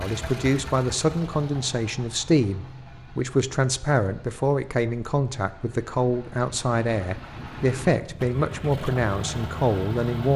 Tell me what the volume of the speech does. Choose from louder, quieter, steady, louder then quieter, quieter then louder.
steady.